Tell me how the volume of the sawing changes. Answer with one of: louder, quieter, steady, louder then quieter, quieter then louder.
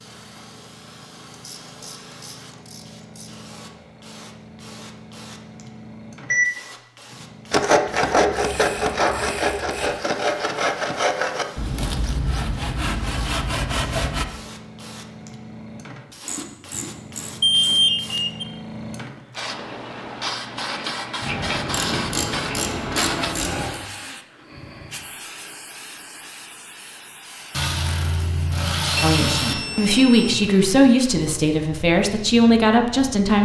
quieter.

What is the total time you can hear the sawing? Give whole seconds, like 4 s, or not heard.
7 s.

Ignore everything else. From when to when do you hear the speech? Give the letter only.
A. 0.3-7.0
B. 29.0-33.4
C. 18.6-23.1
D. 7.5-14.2
B.